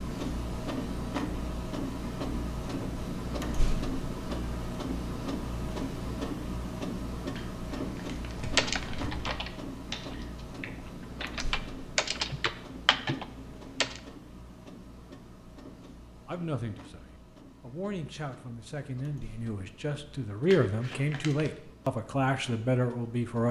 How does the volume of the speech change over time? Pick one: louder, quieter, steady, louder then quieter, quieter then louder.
louder.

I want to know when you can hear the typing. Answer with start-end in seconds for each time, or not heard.
8.5-14.0.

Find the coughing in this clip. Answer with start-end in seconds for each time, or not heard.
not heard.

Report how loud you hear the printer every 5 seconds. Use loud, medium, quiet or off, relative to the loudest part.
loud, loud, medium, quiet, quiet.